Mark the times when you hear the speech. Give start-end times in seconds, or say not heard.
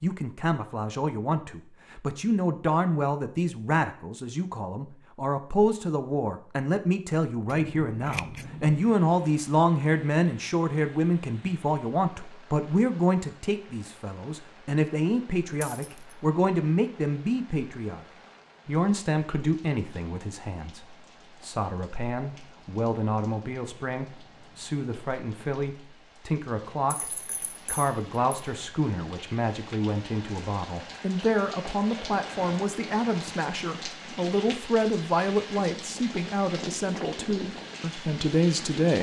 0.0-18.1, 18.6-38.9.